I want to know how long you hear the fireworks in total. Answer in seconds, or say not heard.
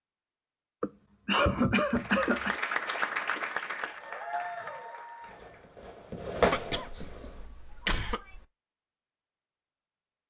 2 s.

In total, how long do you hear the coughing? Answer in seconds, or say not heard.
4 s.